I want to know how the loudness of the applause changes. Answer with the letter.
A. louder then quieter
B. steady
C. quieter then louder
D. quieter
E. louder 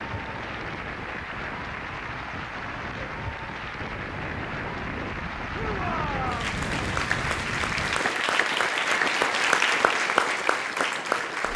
E.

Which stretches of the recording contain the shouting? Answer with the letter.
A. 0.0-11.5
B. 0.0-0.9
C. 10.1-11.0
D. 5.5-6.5
D.